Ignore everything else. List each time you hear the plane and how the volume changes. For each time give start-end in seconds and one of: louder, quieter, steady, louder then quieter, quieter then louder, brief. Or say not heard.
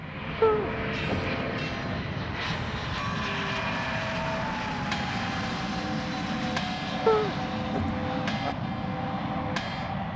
0.0-10.1 steady.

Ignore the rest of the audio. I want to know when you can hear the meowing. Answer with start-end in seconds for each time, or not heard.
0.4-1.4, 7.0-8.6.